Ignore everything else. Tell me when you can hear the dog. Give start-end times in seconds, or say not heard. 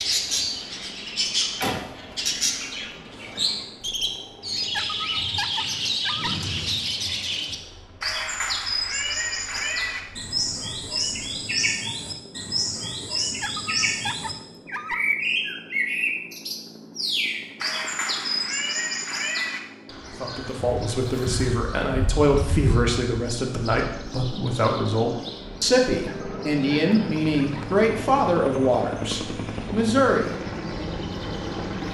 4.7-6.3, 13.4-15.1, 26.1-27.6.